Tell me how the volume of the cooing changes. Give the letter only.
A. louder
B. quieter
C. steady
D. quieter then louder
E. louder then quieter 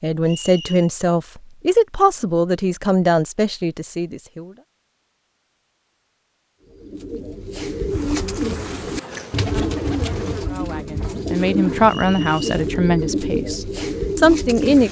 C.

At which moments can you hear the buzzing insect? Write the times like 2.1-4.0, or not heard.
7.9-10.4.